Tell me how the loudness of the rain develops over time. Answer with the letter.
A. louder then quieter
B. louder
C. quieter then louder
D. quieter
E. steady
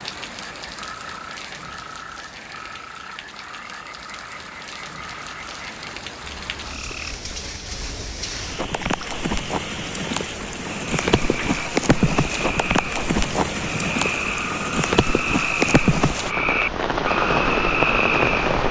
B.